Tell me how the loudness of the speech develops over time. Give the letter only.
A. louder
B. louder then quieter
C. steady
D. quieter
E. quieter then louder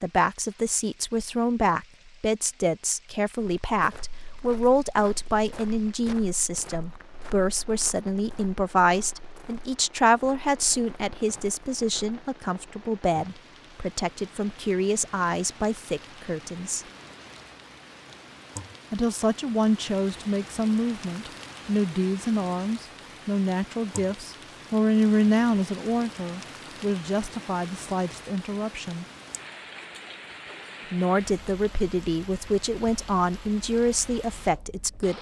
C.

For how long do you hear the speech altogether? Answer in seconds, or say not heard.
31 s.